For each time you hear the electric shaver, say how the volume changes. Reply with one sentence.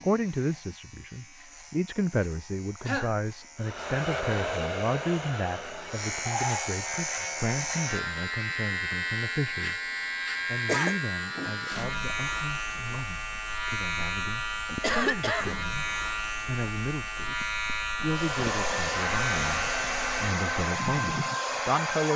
You can hear the electric shaver from 0.0 to 20.4 s, getting louder.